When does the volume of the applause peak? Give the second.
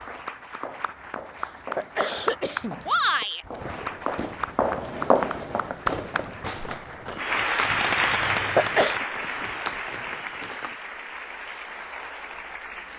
8 s.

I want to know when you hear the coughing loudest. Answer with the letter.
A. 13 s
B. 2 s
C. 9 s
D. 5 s
C.